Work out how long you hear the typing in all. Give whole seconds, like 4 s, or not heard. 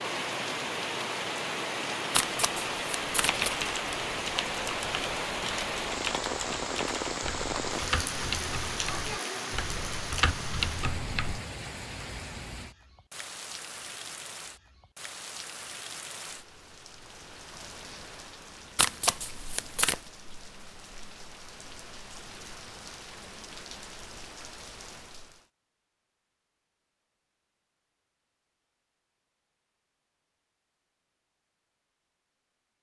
8 s.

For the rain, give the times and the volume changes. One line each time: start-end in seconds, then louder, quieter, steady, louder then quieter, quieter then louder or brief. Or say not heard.
0.0-25.4 quieter.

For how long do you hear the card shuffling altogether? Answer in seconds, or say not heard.
3 s.